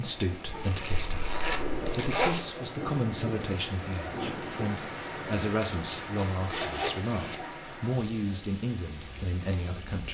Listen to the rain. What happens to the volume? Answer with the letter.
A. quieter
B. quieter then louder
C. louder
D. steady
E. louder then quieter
A.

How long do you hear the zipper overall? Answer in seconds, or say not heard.
4 s.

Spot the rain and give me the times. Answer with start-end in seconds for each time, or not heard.
0.0-10.1.